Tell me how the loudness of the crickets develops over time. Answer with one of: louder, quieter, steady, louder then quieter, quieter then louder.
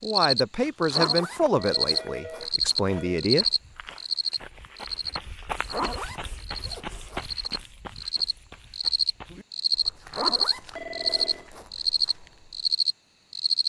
quieter then louder.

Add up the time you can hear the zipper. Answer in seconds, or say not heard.
6 s.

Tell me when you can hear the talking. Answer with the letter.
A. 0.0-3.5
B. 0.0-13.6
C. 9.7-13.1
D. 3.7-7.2
A.